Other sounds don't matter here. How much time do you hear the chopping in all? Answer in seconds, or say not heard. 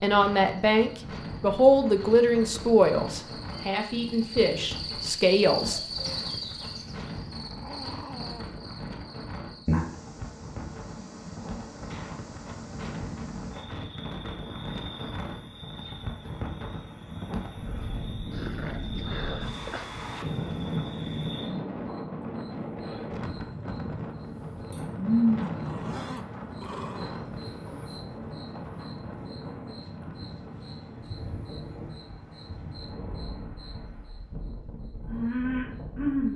not heard.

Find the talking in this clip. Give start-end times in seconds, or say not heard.
0.0-5.8.